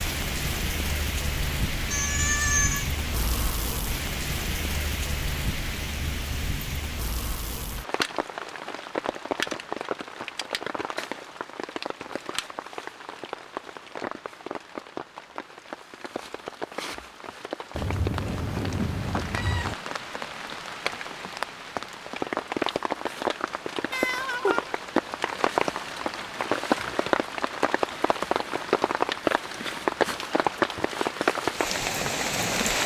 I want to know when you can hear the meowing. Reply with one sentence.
The meowing can be heard from 1.9 to 2.9 s, from 17.8 to 19.8 s and from 23.9 to 24.8 s.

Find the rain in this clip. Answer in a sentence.
The rain can be heard from 0.0 to 32.8 s.